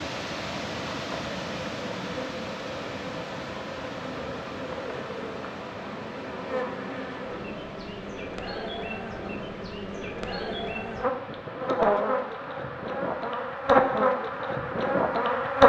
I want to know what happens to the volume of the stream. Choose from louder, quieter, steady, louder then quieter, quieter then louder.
quieter.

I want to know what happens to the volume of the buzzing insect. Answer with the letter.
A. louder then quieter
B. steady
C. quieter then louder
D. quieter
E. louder
E.